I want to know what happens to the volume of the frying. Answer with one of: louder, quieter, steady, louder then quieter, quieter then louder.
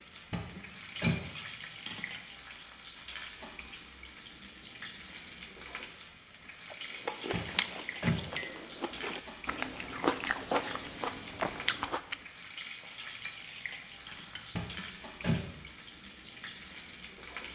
steady.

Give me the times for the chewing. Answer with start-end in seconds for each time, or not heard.
6.7-12.2.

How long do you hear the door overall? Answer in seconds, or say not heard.
3 s.